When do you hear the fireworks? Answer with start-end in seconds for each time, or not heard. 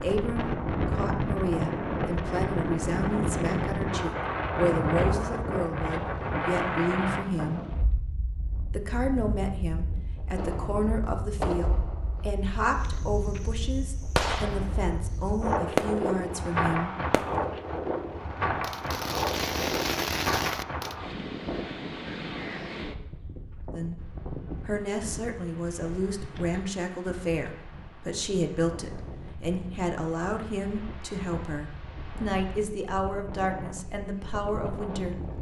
10.3-16.1, 17.1-17.6, 18.6-20.9.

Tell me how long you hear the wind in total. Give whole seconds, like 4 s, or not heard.
35 s.